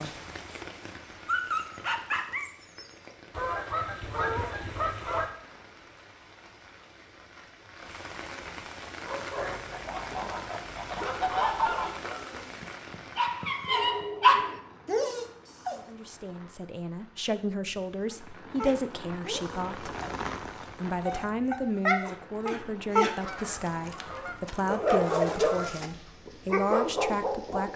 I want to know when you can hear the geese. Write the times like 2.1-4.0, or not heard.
3.3-5.3, 9.3-11.9, 23.2-25.9.